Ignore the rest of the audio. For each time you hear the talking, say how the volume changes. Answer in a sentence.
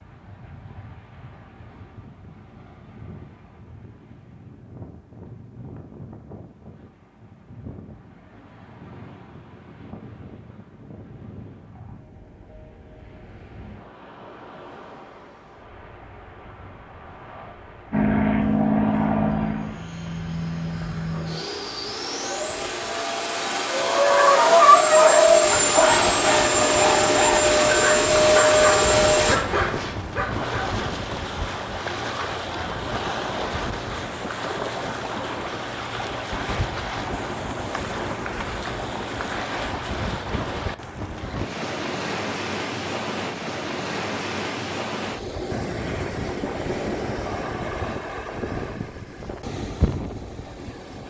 You can't hear the talking here.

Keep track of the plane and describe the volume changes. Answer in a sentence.
The loudness of the plane goes down, then up.